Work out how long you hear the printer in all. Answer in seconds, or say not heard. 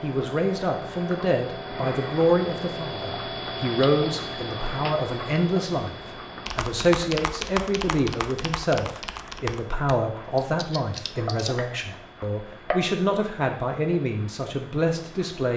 not heard.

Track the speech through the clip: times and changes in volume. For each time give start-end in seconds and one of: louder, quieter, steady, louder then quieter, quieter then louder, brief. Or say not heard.
0.0-15.5 steady.